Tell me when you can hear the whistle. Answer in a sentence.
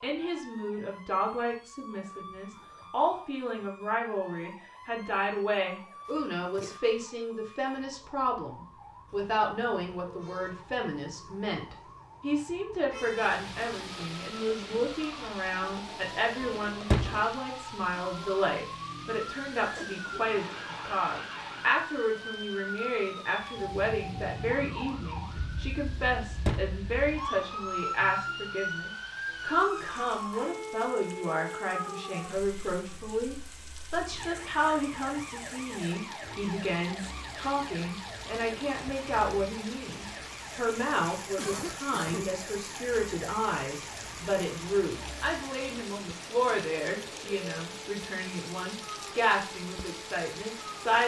You can't hear the whistle here.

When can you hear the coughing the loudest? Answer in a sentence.
The loudest moment of the coughing is at 42 seconds.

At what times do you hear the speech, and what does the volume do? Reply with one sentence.
You can hear the speech from 0.0 to 51.0 s, at a steady volume.